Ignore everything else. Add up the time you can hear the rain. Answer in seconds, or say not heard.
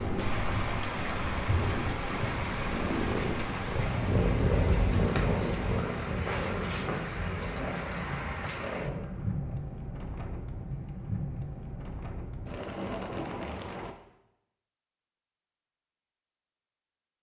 14 s.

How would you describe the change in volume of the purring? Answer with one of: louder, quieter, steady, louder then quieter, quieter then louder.
louder then quieter.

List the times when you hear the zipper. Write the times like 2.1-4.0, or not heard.
not heard.